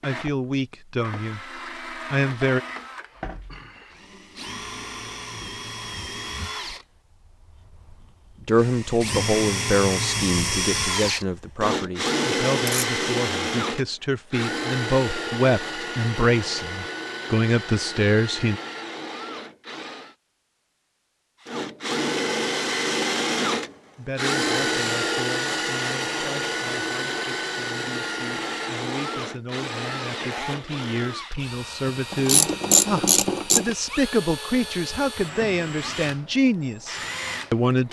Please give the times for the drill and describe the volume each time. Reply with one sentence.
You can hear the drill from 0.0 to 20.1 s, getting louder then quieter; and from 21.4 to 37.8 s, getting quieter.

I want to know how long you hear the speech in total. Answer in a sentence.
You can hear the speech for 27 seconds altogether.